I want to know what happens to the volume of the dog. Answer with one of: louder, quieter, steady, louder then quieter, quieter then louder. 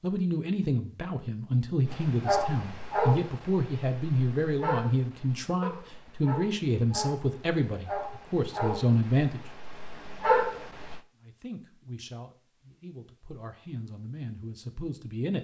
quieter then louder.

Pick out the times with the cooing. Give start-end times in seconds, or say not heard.
not heard.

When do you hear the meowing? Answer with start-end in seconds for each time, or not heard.
not heard.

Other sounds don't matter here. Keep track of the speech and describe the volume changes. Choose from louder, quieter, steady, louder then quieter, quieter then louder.
quieter.